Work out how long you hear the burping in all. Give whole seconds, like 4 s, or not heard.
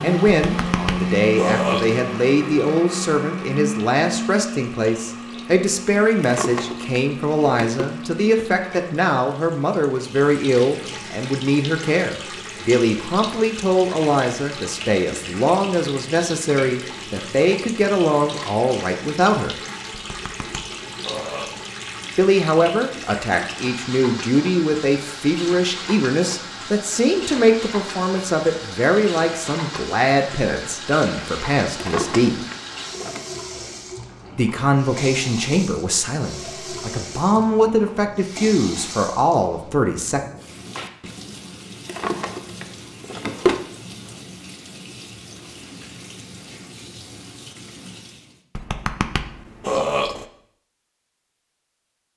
5 s.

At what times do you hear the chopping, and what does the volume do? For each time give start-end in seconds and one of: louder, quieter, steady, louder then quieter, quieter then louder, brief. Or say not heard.
not heard.